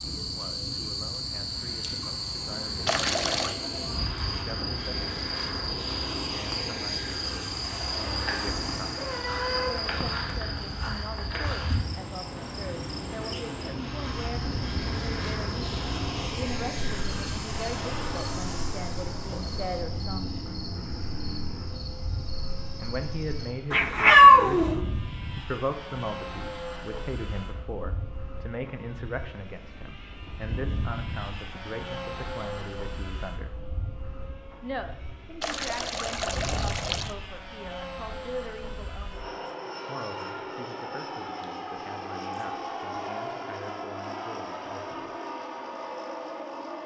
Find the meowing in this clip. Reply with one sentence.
The meowing can be heard from 8.3 to 10.3 s and from 23.7 to 24.8 s.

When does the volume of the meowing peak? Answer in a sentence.
The loudest moment of the meowing is at 24 seconds.